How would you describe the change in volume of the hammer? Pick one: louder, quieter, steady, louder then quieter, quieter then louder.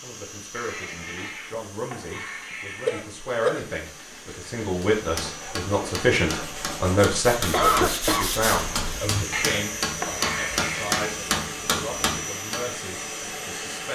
louder.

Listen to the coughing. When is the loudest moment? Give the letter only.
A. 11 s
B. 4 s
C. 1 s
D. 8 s
D.